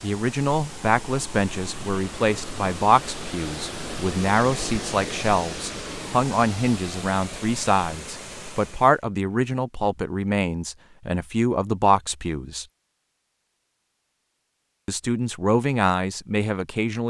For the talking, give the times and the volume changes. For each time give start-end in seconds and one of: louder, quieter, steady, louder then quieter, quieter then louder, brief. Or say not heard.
0.0-12.7 steady
14.8-17.0 brief.